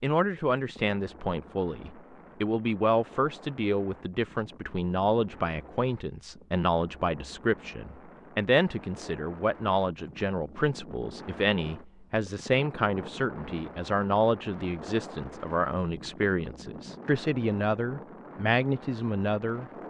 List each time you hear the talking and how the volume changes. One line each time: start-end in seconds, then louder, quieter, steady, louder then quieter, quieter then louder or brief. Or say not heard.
0.0-19.6 steady.